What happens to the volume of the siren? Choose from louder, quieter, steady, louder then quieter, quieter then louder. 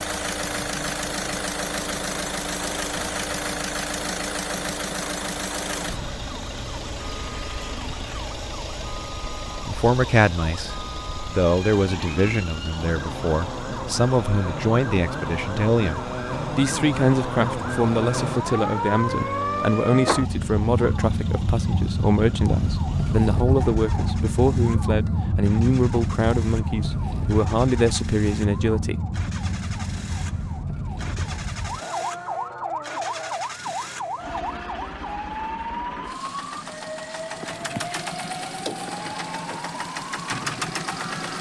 louder then quieter.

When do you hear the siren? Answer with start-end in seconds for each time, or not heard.
0.2-41.3.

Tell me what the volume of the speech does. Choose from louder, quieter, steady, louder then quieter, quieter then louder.
steady.